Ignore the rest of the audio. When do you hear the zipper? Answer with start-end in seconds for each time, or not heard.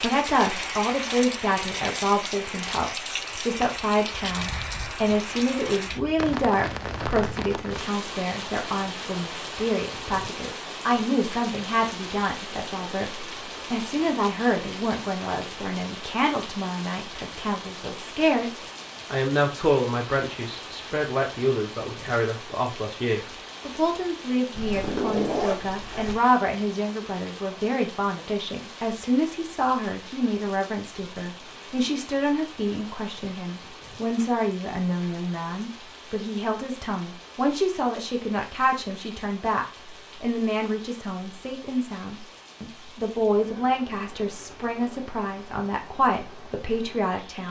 24.6-26.2.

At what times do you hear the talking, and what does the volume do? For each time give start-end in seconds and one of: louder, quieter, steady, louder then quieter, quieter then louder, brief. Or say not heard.
0.0-47.4 steady.